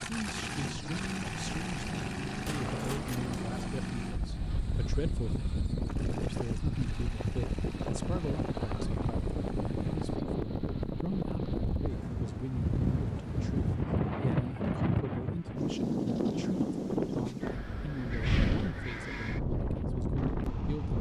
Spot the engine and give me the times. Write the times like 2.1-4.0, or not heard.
0.0-10.2.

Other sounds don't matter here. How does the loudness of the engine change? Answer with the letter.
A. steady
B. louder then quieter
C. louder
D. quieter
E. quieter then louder
D.